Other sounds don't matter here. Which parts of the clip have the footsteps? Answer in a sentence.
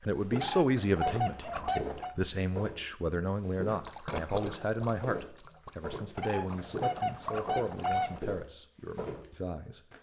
The footsteps can be heard from 0.1 to 9.9 s.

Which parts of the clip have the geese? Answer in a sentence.
The geese can be heard from 0.3 to 2.1 s and from 6.2 to 8.2 s.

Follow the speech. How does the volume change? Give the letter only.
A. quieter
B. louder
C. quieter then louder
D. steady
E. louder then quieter
A.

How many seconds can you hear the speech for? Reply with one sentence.
The speech can be heard for 10 seconds in total.